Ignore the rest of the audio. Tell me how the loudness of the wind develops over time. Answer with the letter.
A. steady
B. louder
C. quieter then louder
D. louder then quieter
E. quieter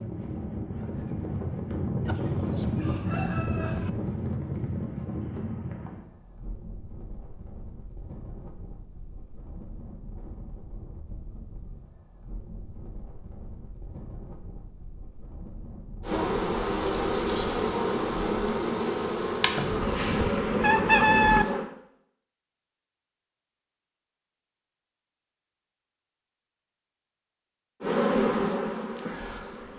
E.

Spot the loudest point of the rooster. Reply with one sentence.
The volume of the rooster peaks at 21 seconds.